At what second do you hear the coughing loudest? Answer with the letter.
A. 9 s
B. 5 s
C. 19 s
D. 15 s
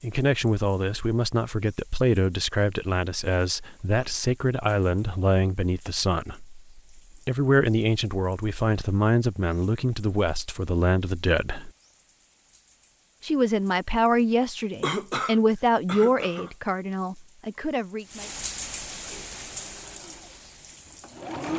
D.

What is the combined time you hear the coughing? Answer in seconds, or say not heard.
2 s.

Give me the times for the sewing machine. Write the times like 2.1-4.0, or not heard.
19.3-21.5.